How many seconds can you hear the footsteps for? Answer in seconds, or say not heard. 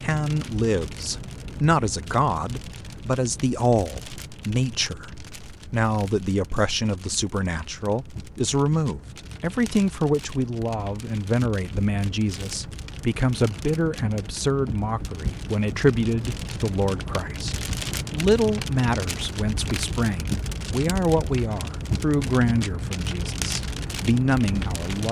not heard.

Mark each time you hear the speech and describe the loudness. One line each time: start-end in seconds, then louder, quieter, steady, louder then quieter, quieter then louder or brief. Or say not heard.
0.0-25.0 steady.